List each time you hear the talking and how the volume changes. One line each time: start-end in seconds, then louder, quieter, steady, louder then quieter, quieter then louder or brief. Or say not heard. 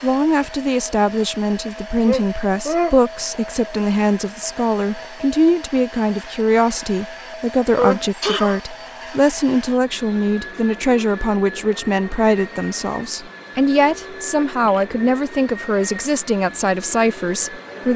0.0-17.9 steady.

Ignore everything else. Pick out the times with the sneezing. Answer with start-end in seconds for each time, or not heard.
2.0-3.0, 7.8-8.6, 14.1-14.8.